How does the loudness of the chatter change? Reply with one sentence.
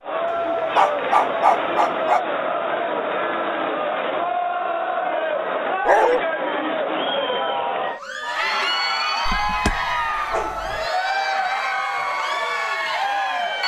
The loudness of the chatter stays about the same.